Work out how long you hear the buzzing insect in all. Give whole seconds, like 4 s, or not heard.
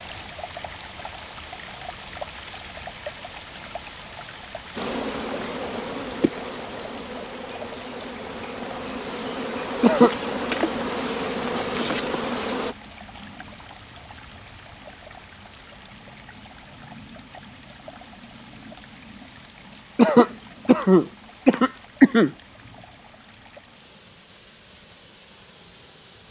8 s.